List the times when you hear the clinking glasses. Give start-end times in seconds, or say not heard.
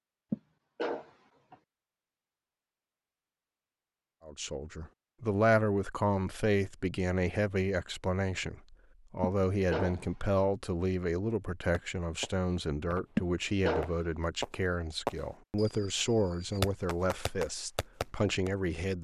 not heard.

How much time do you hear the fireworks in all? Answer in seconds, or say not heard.
7 s.